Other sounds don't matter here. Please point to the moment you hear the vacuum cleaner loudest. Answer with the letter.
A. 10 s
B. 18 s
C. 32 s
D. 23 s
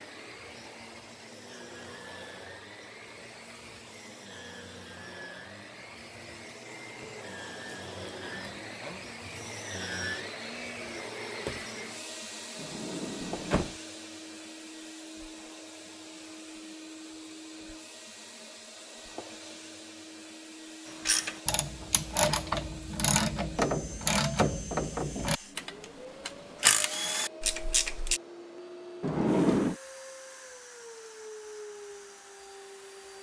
A.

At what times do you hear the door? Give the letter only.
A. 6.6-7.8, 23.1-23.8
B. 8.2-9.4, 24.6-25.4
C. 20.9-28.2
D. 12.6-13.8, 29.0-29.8
D.